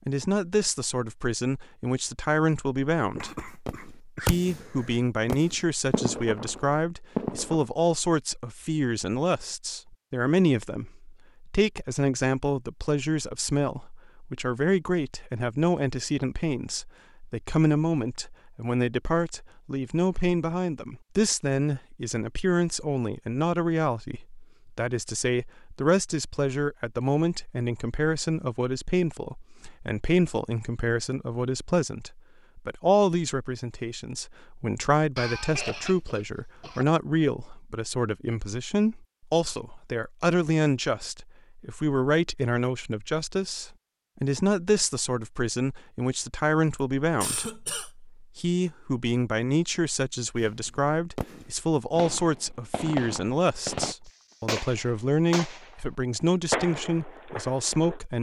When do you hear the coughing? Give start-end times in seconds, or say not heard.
3.1-5.0, 35.1-36.9, 47.2-47.9.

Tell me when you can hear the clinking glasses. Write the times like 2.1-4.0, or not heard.
not heard.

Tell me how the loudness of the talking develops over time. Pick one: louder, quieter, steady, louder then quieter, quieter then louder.
steady.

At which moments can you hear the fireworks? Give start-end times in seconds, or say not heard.
3.6-4.7, 5.2-7.7, 50.4-55.8, 56.5-58.0.